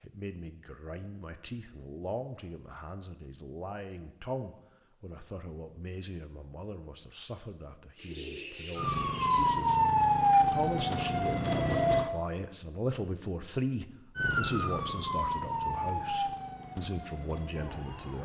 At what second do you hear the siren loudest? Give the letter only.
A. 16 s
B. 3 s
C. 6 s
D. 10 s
D.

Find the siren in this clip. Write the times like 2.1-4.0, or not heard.
8.8-12.1, 14.2-18.2.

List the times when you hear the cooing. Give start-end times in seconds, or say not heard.
8.0-9.6.